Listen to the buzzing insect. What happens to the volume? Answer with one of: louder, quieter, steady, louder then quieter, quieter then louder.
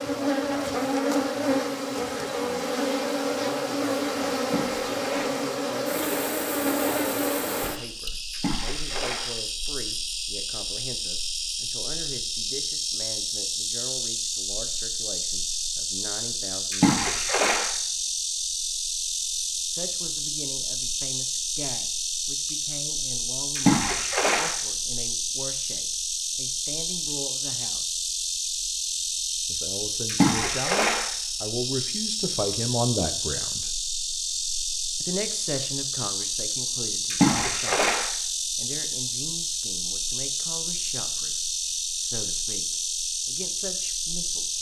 steady.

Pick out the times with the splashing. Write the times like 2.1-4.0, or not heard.
4.4-5.4, 8.3-9.3, 16.7-17.7, 23.6-24.6, 30.1-31.1, 37.1-38.1.